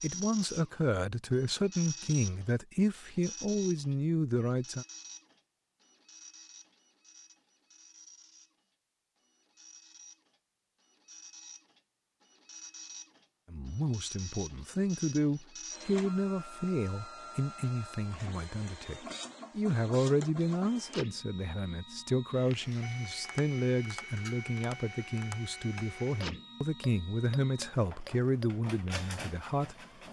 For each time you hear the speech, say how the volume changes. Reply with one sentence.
The speech can be heard from 0.0 to 4.8 s, at a steady volume; and from 13.5 to 30.0 s, at a steady volume.